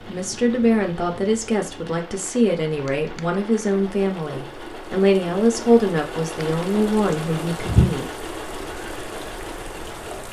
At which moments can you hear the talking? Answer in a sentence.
The talking can be heard from 0.0 to 8.1 s.